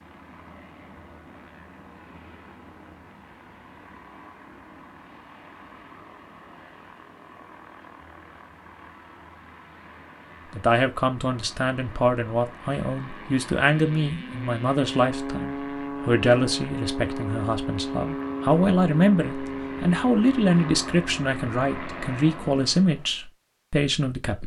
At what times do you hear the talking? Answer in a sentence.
You can hear the talking from 10.5 to 24.4 s.